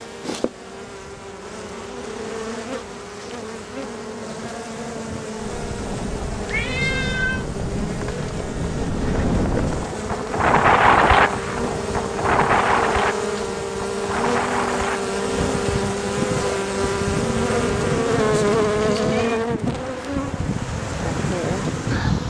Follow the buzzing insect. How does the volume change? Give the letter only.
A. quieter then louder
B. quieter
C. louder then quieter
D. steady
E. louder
E.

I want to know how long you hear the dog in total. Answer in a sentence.
You can't hear the dog here.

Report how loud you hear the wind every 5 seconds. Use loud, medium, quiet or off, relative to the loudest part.
off, medium, loud, medium, medium.